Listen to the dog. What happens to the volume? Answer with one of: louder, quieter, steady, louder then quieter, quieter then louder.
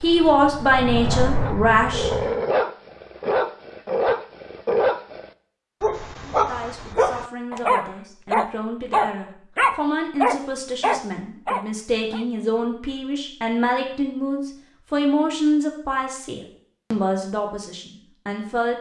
steady.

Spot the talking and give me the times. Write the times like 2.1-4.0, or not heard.
0.0-2.1, 6.2-18.7.